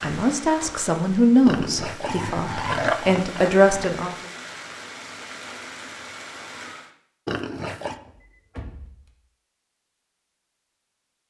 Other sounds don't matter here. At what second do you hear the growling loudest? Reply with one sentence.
The volume of the growling peaks at 3 seconds.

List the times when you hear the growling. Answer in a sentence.
The growling can be heard from 1.4 to 3.9 s and from 7.2 to 8.0 s.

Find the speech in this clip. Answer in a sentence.
The speech can be heard from 0.0 to 4.2 s.